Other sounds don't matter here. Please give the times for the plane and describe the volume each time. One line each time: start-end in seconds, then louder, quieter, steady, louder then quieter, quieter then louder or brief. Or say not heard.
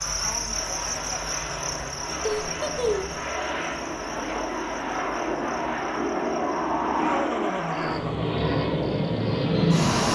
0.0-10.1 louder.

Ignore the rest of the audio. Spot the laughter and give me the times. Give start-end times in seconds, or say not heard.
2.2-3.2, 6.8-8.4.